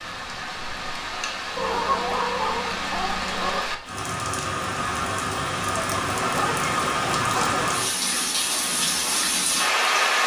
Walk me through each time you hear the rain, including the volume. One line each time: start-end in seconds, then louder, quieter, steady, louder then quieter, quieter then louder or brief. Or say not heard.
0.0-10.2 louder.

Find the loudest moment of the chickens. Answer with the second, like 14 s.
2 s.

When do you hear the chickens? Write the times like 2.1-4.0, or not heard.
1.6-3.6, 5.8-7.7.